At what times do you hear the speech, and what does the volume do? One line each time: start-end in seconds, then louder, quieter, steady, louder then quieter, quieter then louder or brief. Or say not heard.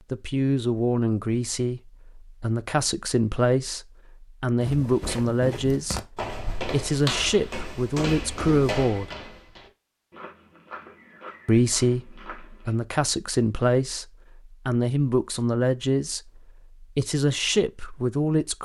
0.1-9.2 steady
11.4-18.6 steady.